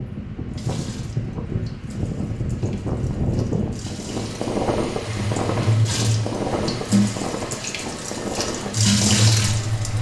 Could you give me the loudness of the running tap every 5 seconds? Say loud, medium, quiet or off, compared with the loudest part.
quiet, loud.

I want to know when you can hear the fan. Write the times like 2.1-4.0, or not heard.
0.0-9.9.